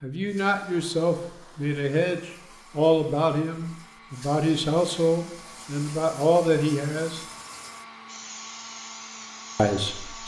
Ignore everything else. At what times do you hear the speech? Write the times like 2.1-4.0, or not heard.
0.0-7.2, 9.6-10.2.